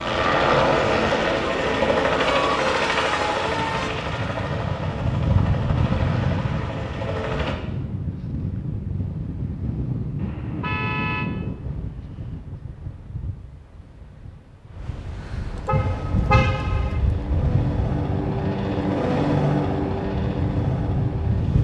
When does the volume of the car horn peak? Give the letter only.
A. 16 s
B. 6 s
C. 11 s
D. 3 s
A.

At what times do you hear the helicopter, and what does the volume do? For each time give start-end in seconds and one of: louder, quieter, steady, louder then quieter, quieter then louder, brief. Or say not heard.
0.0-7.5 quieter
15.7-21.5 louder then quieter.